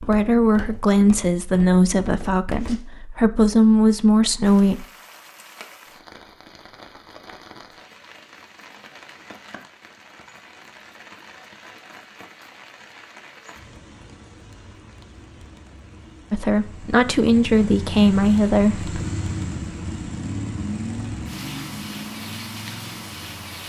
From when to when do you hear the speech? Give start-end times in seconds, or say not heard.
0.0-4.8, 16.3-19.0.